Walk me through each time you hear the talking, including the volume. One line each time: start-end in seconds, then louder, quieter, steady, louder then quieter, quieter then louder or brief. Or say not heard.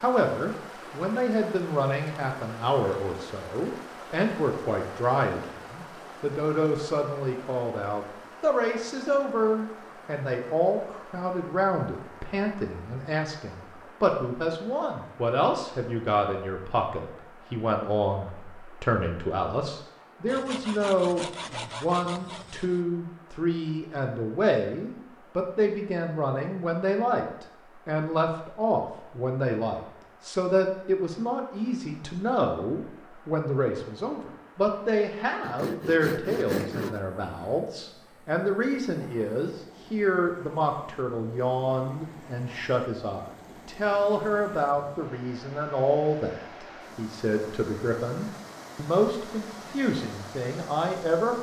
0.0-51.3 steady.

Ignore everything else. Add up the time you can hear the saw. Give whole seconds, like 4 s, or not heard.
4 s.